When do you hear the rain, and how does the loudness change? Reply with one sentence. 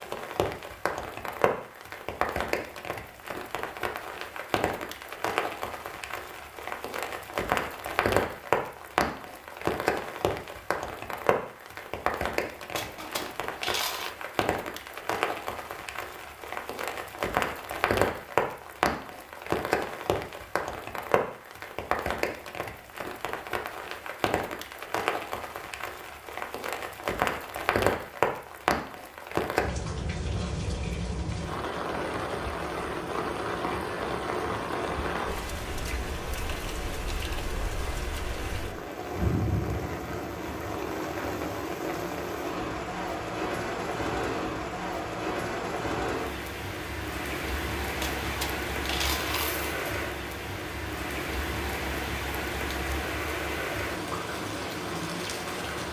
You can hear the rain from 0.0 to 55.8 s, at a steady volume.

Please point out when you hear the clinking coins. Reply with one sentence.
The clinking coins can be heard from 12.8 to 14.1 s and from 48.0 to 49.8 s.